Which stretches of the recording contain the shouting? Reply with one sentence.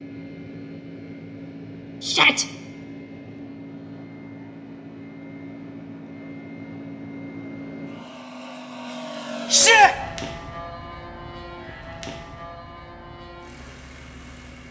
The shouting can be heard from 2.0 to 2.5 s and from 9.5 to 9.9 s.